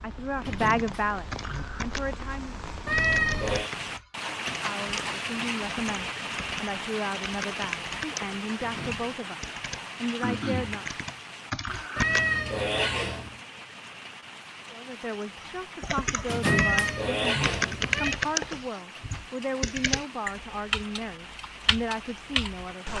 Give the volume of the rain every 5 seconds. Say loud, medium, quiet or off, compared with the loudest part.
loud, loud, medium, medium, medium.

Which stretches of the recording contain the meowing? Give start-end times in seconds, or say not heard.
2.9-3.7, 11.9-13.3, 16.4-18.1.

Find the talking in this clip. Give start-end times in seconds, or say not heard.
0.0-2.5, 4.5-11.1, 14.7-22.9.